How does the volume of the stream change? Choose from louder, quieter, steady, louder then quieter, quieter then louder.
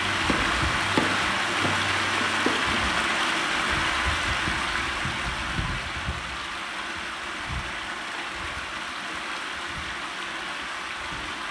quieter.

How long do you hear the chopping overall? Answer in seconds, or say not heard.
3 s.